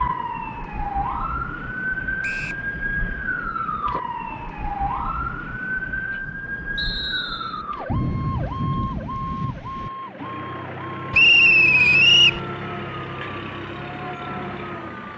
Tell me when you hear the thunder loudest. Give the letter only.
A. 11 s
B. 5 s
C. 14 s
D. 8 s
D.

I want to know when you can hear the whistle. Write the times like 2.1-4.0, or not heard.
2.2-2.6, 6.8-7.6, 11.1-12.4.